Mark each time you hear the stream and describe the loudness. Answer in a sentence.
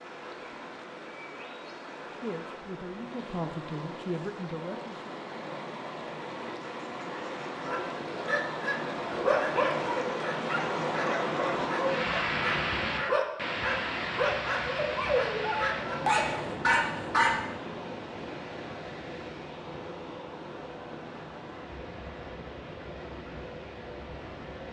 You can hear the stream from 0.0 to 24.6 s, getting louder then quieter.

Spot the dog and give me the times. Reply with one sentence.
You can hear the dog from 7.7 to 17.4 s.